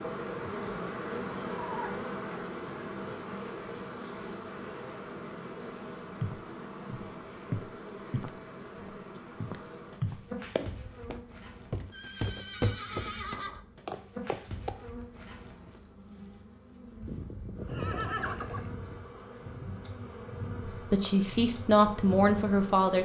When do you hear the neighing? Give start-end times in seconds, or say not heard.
1.4-2.1, 11.9-13.7, 17.1-19.0.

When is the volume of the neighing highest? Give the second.
18 s.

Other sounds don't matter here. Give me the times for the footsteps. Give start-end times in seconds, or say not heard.
6.2-14.8.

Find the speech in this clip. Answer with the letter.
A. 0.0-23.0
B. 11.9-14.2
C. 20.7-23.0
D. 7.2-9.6
C.